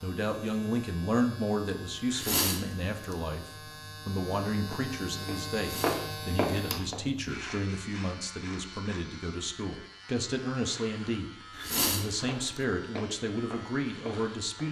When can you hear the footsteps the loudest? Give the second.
6 s.